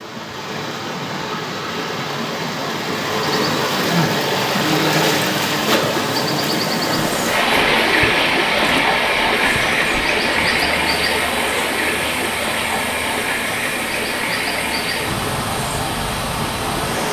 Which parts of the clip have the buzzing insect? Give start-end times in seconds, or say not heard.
3.2-17.0.